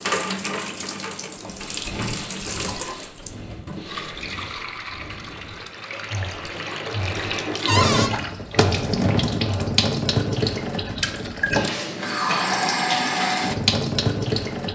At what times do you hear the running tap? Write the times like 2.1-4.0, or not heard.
0.0-14.7.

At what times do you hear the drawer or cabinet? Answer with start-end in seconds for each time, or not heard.
7.7-8.1.